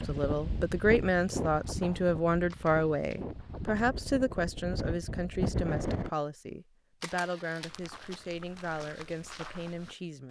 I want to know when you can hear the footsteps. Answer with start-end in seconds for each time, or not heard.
7.6-10.2.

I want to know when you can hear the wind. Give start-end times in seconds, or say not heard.
0.0-6.1.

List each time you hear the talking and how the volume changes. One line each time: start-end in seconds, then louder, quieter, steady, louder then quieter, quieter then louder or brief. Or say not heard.
0.0-10.2 quieter.